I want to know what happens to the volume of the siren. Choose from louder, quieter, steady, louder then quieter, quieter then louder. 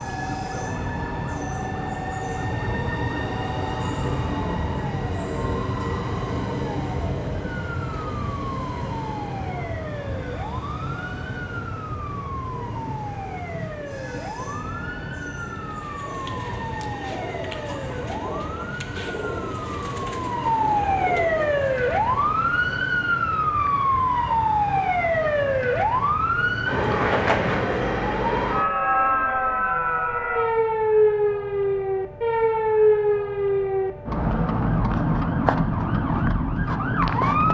louder.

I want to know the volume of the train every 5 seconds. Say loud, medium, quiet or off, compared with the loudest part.
loud, loud, medium, medium, medium, medium, off, off.